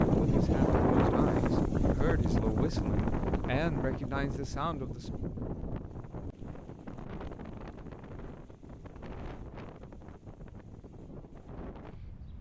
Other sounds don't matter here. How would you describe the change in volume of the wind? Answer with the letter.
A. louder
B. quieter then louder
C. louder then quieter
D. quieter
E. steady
D.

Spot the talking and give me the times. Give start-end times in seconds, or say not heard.
0.2-5.1.